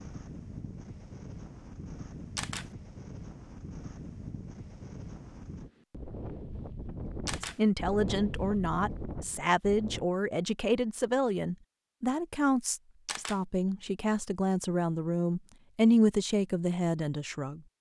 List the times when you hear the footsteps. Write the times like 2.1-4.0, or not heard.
not heard.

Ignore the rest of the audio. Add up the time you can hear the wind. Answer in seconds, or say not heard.
10 s.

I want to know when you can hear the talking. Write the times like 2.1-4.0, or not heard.
7.4-17.6.